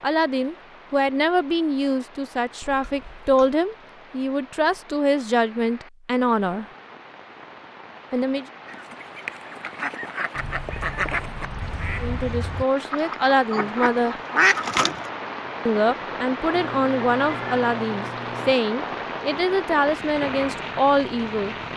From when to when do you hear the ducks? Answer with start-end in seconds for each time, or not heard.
8.7-15.1.